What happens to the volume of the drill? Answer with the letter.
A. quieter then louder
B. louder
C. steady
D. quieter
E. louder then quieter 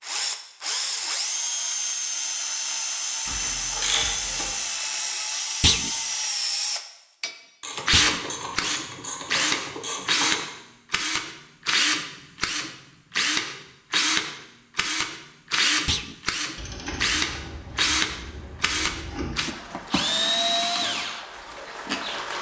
C.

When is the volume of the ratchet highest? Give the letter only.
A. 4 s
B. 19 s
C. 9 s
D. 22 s
A.